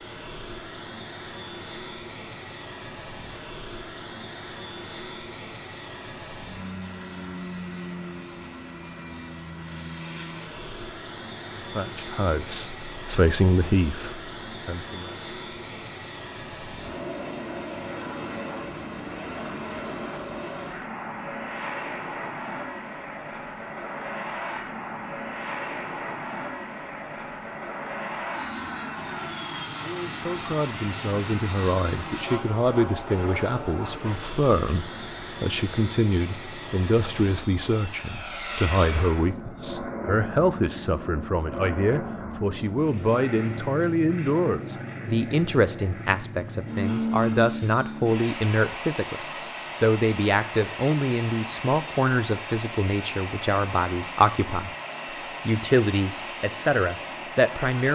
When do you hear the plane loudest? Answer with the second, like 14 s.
47 s.